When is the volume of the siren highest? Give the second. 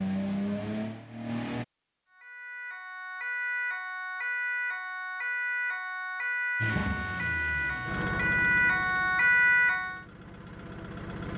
9 s.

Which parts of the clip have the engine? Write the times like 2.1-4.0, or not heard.
0.0-1.6, 6.6-11.3.